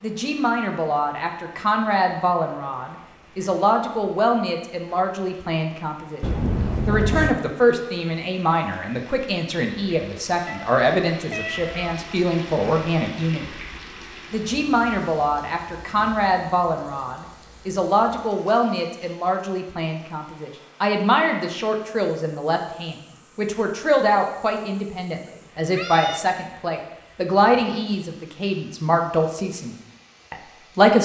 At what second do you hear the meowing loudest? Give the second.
7 s.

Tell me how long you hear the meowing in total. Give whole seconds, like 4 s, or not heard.
4 s.